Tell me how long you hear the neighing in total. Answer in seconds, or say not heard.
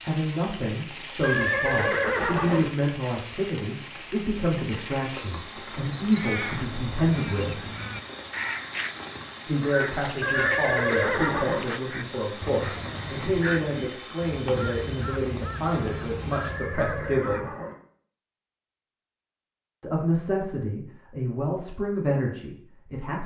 4 s.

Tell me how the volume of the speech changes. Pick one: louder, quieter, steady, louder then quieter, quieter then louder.
steady.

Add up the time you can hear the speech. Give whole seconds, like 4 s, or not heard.
19 s.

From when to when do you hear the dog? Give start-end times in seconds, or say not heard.
not heard.